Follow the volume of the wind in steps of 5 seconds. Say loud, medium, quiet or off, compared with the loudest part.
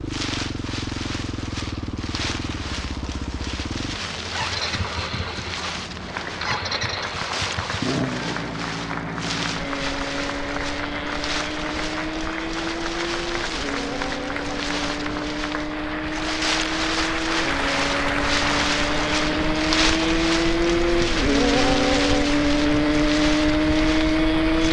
medium, medium, medium, loud, loud.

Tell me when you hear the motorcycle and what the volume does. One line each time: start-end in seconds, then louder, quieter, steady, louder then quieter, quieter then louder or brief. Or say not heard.
0.0-24.6 louder.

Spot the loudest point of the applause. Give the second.
18 s.